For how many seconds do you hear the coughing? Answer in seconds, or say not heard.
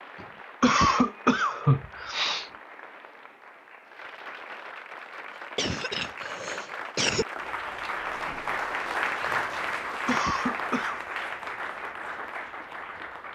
5 s.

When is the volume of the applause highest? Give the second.
9 s.